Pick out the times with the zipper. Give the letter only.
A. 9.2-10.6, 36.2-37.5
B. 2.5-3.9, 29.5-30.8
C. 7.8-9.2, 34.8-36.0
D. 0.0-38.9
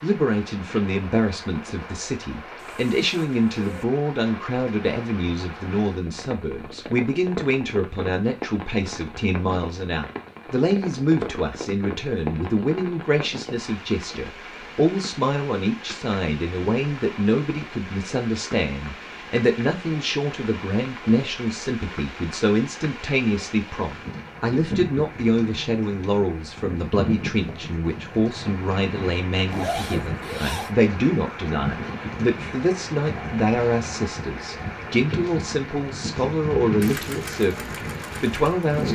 B.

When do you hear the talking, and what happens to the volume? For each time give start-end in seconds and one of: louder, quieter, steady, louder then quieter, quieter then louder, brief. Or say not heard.
0.0-38.9 steady.